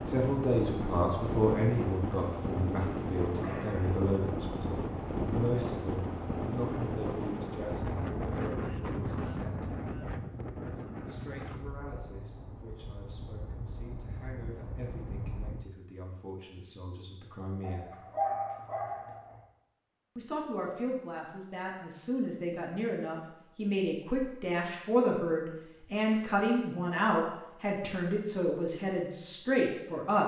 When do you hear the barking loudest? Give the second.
18 s.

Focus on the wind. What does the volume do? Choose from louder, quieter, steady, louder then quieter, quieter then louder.
quieter.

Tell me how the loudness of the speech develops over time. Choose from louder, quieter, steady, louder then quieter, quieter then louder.
quieter then louder.